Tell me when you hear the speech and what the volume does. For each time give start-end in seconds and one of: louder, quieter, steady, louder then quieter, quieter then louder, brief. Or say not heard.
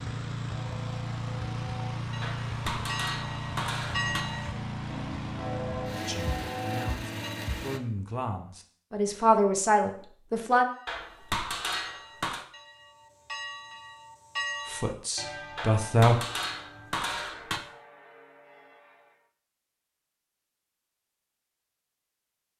6.0-10.7 louder
14.7-16.2 brief.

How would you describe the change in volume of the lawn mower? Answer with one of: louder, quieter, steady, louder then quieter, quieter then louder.
steady.